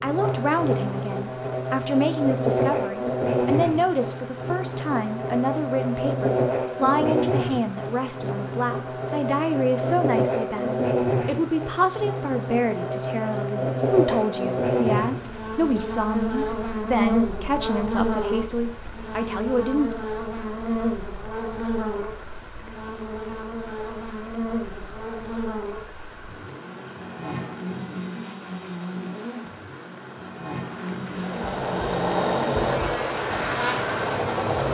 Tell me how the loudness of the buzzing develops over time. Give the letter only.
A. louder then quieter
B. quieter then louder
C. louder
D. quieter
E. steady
D.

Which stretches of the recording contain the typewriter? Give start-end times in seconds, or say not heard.
not heard.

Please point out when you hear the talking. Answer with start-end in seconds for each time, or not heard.
0.0-19.9.